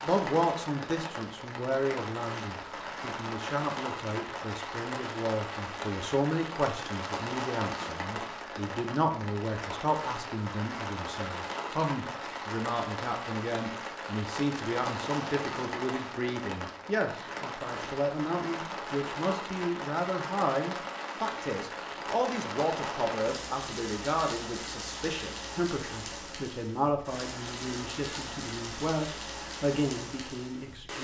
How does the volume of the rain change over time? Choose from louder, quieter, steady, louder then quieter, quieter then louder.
steady.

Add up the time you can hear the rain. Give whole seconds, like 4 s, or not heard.
31 s.